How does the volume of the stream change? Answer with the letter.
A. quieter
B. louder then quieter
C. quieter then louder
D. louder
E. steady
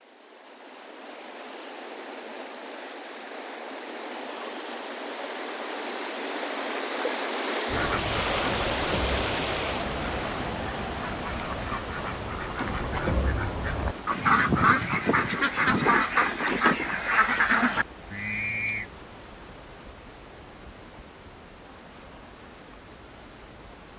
B.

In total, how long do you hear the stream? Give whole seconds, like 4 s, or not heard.
24 s.